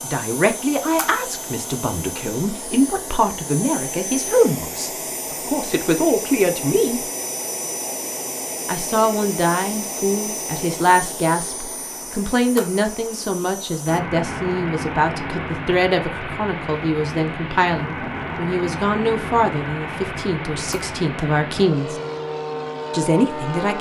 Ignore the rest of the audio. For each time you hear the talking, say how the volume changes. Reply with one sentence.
The talking can be heard from 0.0 to 7.0 s, at a steady volume; from 8.7 to 21.9 s, at a steady volume; and briefly from 22.9 to 23.7 s.